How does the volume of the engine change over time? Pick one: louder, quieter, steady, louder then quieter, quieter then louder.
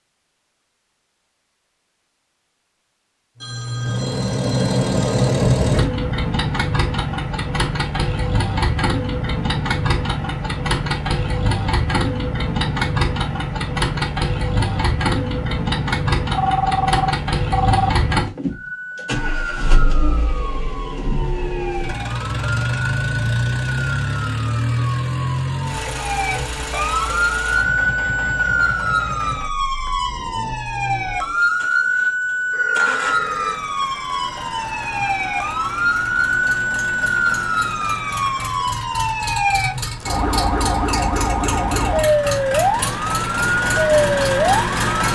quieter then louder.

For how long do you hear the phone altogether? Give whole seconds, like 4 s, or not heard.
5 s.